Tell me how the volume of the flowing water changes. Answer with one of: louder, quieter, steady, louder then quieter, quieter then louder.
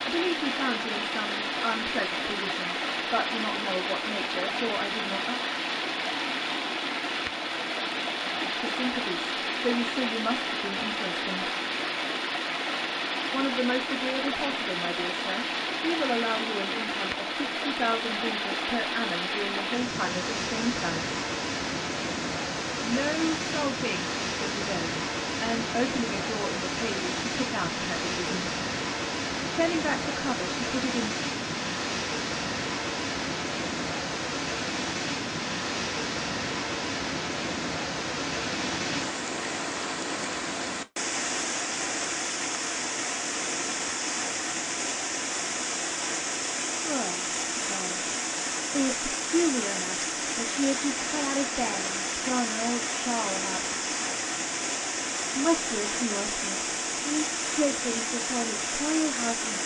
steady.